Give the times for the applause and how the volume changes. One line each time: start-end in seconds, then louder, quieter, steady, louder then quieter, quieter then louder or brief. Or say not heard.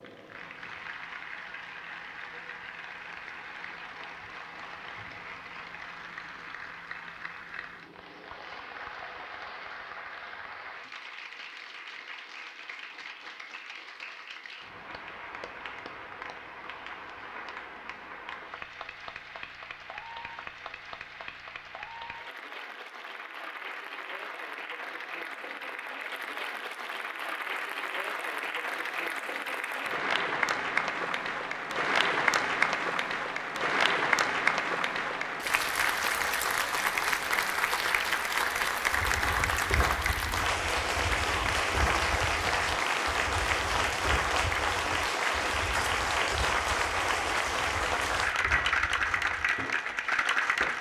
0.0-50.7 louder.